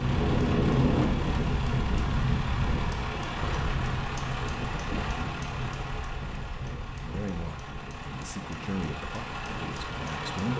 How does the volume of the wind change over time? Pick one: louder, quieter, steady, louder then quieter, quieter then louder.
quieter.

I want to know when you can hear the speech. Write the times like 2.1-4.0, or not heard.
7.0-10.5.